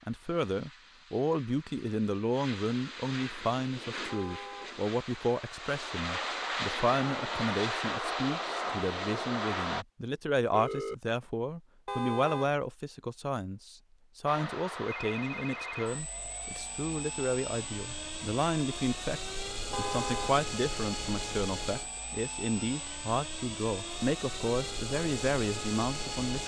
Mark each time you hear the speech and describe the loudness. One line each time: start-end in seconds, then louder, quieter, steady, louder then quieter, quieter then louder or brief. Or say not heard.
0.1-26.4 steady.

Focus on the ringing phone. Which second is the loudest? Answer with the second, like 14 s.
11 s.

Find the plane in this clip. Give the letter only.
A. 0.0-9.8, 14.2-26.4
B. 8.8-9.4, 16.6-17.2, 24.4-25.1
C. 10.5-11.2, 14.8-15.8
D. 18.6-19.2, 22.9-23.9
A.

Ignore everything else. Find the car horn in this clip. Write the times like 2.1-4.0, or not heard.
4.0-4.8, 11.8-12.6, 19.7-20.4.